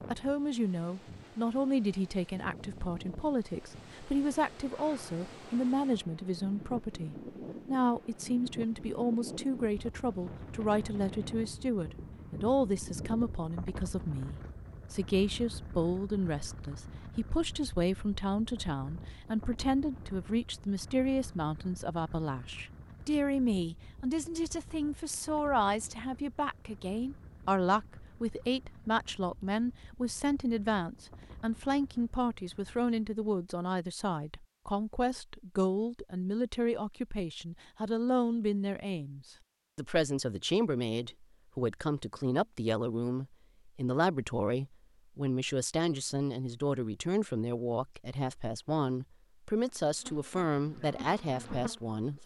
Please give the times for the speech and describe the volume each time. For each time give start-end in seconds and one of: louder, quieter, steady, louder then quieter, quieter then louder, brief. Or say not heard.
0.1-52.2 steady.